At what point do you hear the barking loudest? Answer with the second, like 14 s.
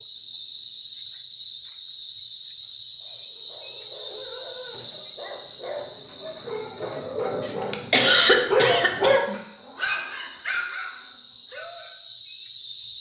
9 s.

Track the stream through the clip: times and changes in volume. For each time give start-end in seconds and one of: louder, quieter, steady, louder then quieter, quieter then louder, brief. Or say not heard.
not heard.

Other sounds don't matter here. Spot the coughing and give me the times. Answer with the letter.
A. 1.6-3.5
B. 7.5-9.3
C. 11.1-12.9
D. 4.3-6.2
B.